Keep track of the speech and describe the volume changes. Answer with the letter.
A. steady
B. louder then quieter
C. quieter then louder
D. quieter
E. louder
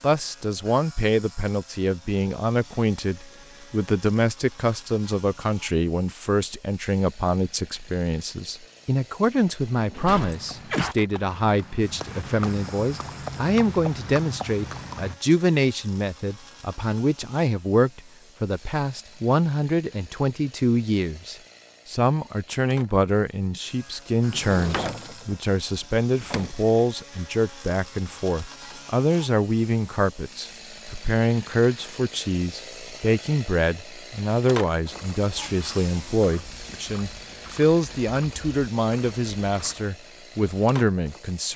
A.